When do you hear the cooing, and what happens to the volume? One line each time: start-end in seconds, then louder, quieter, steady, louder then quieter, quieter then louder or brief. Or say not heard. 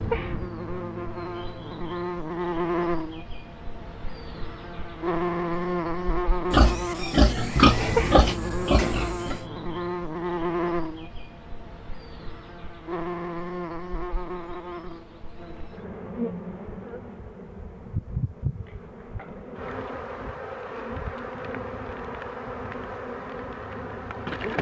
not heard.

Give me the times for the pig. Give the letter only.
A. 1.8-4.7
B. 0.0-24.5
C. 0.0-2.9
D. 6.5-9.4
D.